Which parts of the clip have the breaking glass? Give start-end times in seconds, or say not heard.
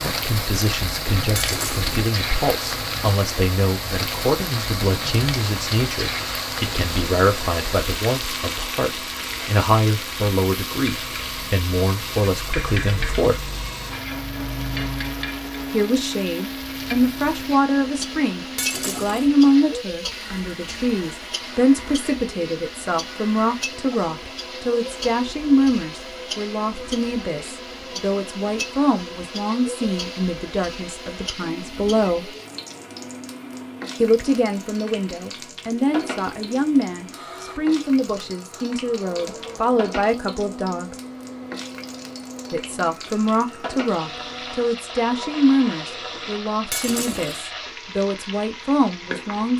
1.4-1.9, 18.6-19.3, 46.7-47.4.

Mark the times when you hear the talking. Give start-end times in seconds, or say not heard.
0.0-13.5, 15.7-32.4, 34.0-41.0, 42.5-49.5.